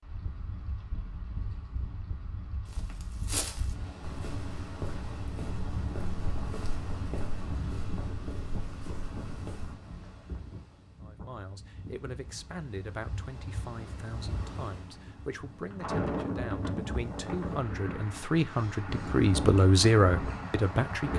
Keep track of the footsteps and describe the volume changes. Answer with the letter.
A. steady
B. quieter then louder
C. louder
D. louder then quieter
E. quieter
E.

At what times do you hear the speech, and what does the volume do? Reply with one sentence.
You can hear the speech from 11.0 to 21.1 s, getting louder.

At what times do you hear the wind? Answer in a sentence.
The wind can be heard from 0.0 to 21.1 s.